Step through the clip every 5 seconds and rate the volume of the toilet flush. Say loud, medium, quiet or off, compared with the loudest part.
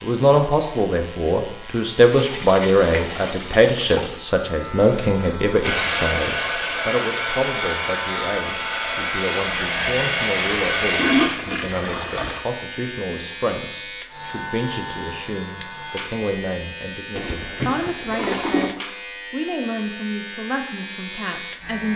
medium, off, loud, loud, off.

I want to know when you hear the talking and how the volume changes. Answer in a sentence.
The talking can be heard from 0.0 to 21.9 s, getting quieter.